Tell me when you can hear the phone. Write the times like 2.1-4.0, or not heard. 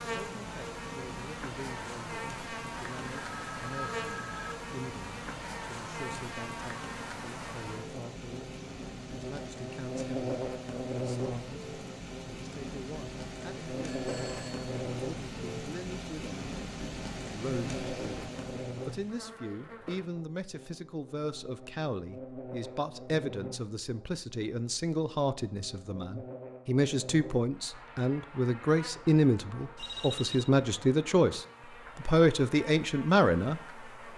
3.1-4.5, 13.8-14.7, 29.8-30.5.